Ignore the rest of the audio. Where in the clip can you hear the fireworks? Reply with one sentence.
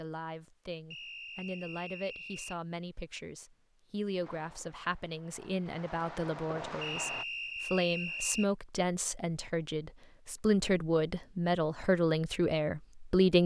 You can hear the fireworks from 4.2 to 7.2 s.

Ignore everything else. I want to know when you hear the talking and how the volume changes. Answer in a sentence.
The talking can be heard from 0.0 to 13.4 s, getting louder.